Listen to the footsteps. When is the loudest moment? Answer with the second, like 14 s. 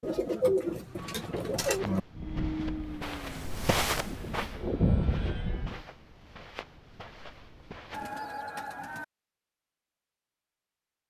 4 s.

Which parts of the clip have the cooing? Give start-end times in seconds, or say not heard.
0.0-2.0, 7.9-9.1.